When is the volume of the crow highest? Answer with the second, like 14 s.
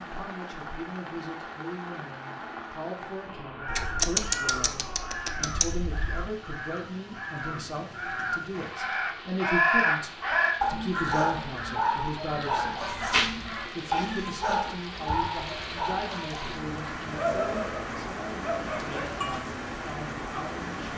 10 s.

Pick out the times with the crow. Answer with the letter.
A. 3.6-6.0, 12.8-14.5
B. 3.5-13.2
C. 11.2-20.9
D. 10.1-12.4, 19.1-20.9
B.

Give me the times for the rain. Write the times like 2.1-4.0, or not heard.
0.0-20.9.